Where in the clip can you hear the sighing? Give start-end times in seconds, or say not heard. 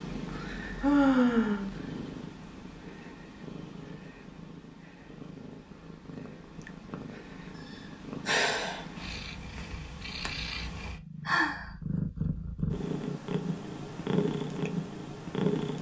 0.8-1.7, 8.2-8.8, 11.2-11.7.